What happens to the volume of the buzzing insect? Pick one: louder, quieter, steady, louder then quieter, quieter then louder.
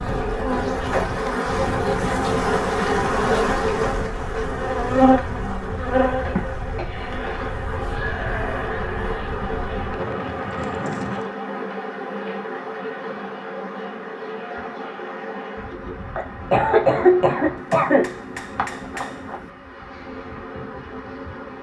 quieter.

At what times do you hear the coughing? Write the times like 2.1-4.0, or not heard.
6.3-7.2, 16.1-18.1.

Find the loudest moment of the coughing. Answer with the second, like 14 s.
17 s.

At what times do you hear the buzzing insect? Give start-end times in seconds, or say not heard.
0.0-21.5.